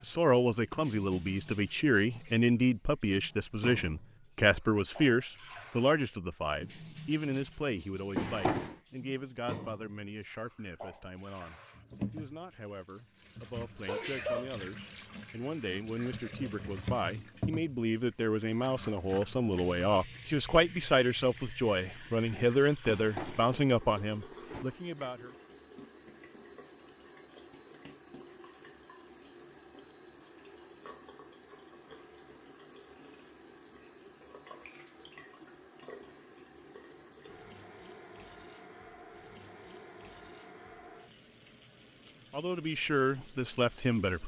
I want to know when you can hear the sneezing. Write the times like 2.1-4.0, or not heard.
13.8-14.6.